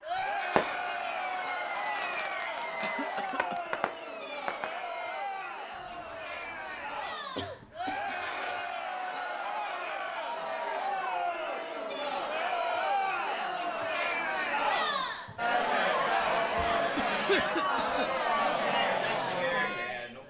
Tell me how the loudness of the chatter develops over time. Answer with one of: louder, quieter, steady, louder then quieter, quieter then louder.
louder.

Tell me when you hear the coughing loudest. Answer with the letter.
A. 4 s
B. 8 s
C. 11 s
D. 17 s
D.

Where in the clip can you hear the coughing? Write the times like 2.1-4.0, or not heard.
2.8-3.7, 7.3-8.7, 16.9-18.1.